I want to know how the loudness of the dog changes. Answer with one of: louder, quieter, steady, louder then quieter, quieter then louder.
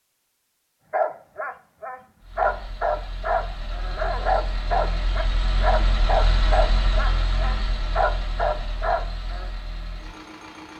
steady.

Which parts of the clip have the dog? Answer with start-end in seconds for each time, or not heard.
0.9-9.5.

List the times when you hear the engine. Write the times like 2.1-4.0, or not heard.
2.2-10.7.